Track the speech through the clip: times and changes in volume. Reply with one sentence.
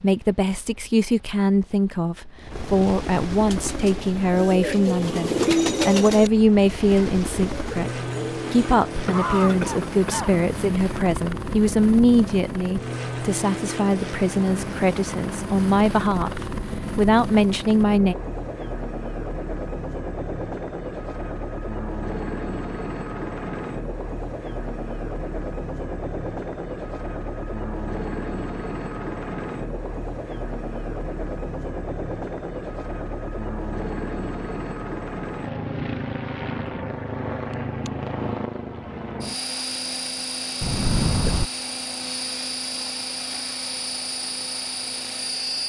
The speech can be heard from 0.0 to 18.1 s, at a steady volume.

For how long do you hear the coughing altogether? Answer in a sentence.
You can hear the coughing for 2 seconds altogether.